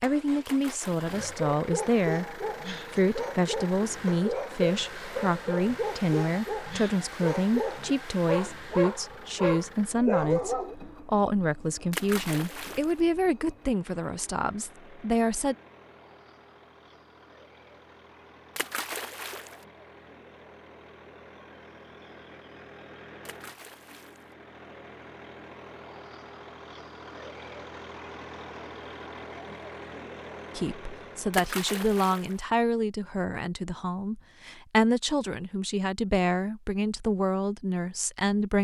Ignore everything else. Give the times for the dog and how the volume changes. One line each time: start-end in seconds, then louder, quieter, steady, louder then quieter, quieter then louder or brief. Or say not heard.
1.1-10.8 louder.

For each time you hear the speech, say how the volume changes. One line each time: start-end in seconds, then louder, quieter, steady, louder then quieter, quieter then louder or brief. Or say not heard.
0.0-15.6 steady
30.6-38.5 steady.